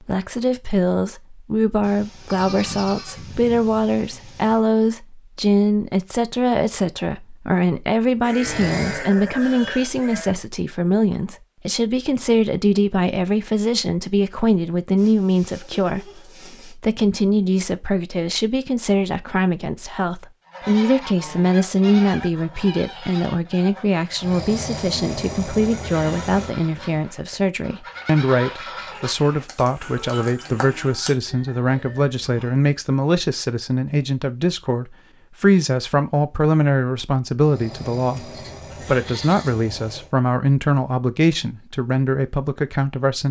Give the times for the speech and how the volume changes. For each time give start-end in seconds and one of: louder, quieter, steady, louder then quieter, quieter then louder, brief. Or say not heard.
0.0-43.2 steady.